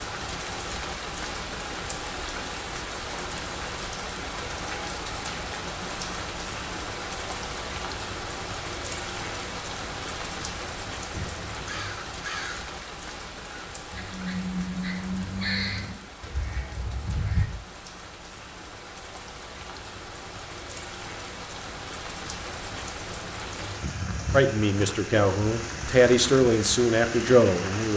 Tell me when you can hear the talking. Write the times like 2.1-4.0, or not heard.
24.3-27.9.